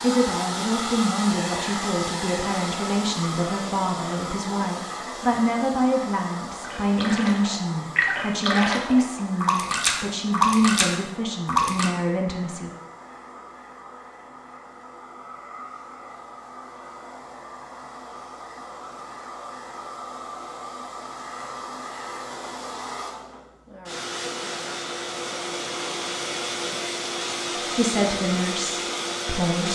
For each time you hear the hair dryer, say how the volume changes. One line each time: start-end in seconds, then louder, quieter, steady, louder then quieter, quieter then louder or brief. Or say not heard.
0.0-29.6 quieter then louder.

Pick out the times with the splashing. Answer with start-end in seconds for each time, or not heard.
6.6-11.9.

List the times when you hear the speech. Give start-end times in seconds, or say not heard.
0.0-12.7, 27.8-29.6.